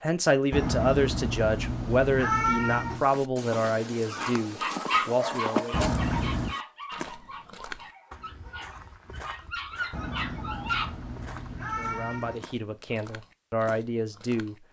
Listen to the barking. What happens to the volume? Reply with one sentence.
The loudness of the barking goes down, then up.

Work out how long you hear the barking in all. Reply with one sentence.
You can hear the barking for 7 seconds altogether.